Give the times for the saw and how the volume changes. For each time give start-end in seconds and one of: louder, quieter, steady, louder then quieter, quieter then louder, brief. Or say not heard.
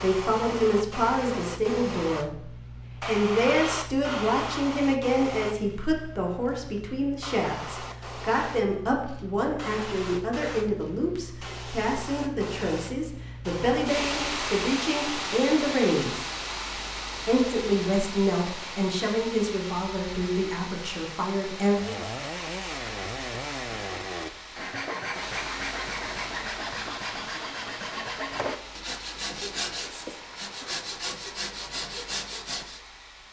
21.6-32.8 steady.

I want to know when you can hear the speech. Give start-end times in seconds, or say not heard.
0.0-16.2, 17.2-21.9.